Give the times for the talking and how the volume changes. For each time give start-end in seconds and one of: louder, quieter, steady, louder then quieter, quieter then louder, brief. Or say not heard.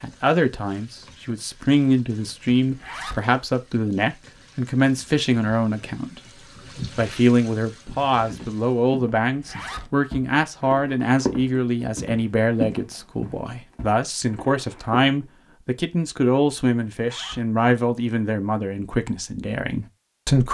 0.0-20.5 steady.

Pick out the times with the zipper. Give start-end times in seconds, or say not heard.
2.6-3.2, 9.3-9.9, 16.9-17.4.